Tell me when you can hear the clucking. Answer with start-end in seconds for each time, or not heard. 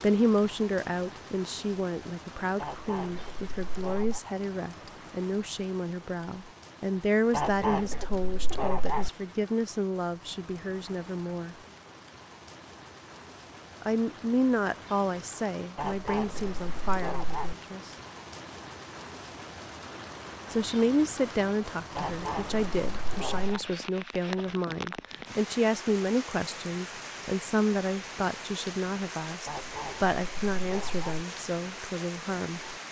2.5-4.2, 7.3-9.1, 15.8-17.6, 21.9-23.6, 29.4-31.2.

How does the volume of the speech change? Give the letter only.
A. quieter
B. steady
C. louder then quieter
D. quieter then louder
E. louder
B.